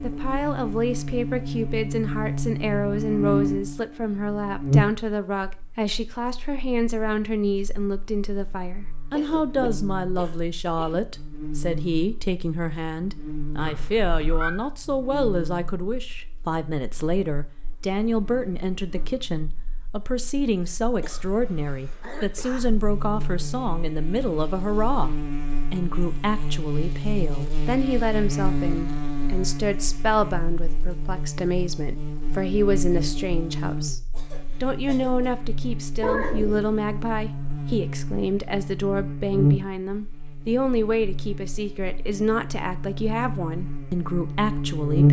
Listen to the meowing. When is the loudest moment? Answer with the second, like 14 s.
36 s.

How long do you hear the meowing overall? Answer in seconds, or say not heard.
2 s.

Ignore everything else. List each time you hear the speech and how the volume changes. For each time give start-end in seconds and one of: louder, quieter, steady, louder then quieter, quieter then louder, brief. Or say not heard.
0.0-45.0 steady.